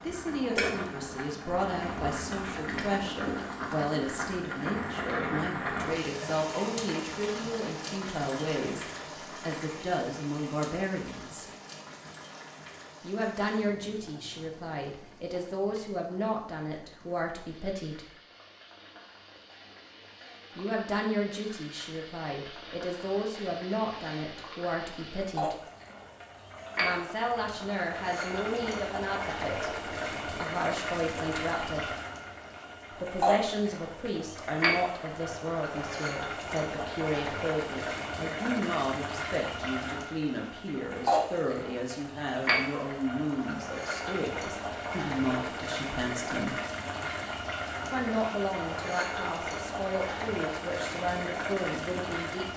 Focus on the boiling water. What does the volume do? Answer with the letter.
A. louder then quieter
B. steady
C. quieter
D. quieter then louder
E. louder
D.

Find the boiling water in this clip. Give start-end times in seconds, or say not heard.
0.0-52.5.